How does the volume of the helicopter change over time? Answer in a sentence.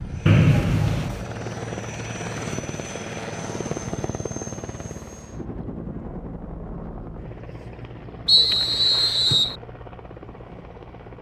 The volume of the helicopter goes down.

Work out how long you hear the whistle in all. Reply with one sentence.
The whistle can be heard for 2 seconds in total.